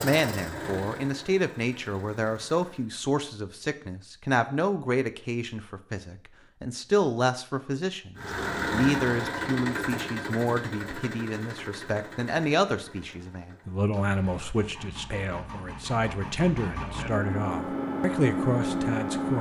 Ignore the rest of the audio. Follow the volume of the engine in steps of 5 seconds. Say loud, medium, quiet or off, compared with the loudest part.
medium, loud, medium, loud.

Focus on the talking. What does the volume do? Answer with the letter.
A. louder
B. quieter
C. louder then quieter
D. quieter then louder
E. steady
E.